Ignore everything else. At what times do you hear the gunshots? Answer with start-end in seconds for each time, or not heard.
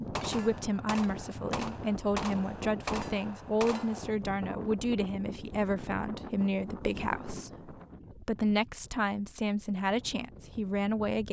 0.1-4.2.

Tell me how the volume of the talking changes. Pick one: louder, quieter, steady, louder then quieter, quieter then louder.
steady.